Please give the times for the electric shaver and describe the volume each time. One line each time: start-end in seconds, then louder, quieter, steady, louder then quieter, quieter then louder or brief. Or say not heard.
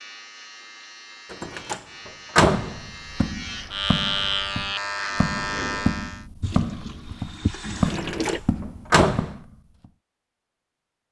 0.0-6.2 louder.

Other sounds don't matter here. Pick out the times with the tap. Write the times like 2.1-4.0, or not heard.
6.4-8.4.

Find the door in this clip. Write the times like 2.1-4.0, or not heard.
1.3-3.2, 7.8-9.3.